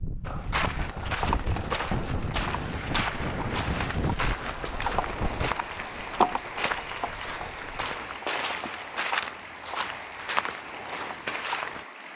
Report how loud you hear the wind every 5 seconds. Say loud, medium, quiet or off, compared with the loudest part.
loud, medium, off.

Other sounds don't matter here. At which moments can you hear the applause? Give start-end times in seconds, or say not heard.
2.7-12.1.